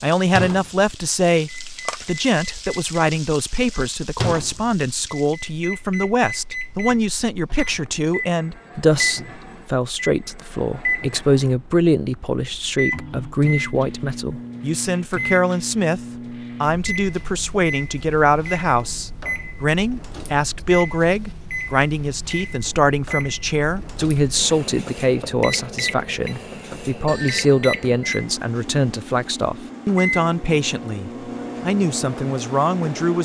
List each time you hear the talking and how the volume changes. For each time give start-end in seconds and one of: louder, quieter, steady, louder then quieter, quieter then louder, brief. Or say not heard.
0.0-16.0 steady
16.6-33.1 steady.